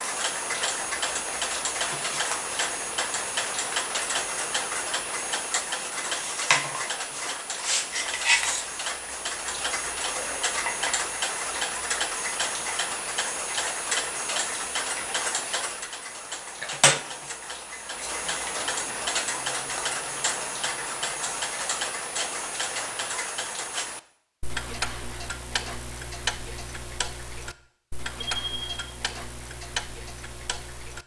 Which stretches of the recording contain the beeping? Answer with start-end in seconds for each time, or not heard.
28.2-28.9.